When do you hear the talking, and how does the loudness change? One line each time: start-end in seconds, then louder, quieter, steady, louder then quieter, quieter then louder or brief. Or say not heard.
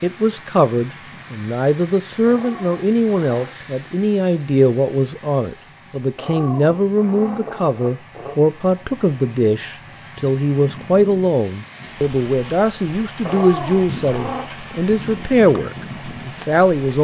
0.0-16.9 steady.